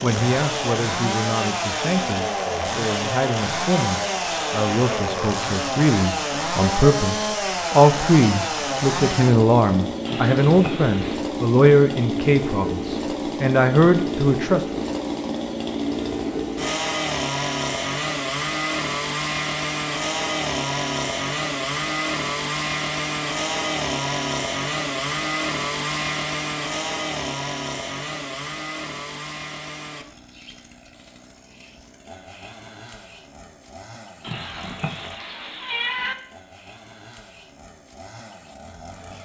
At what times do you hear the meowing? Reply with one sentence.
The meowing can be heard from 10.1 to 11.2 s and from 34.2 to 36.1 s.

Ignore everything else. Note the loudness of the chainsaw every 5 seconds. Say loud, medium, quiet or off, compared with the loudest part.
loud, loud, loud, loud, loud, loud, quiet, quiet.